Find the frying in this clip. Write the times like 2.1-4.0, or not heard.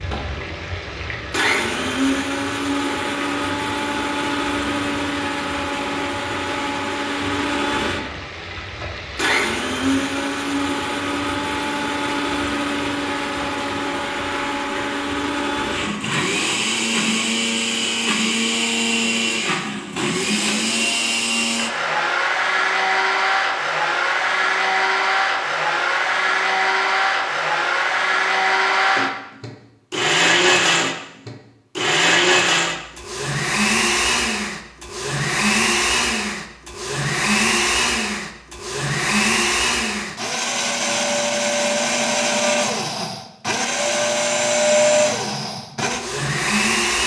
0.0-14.9.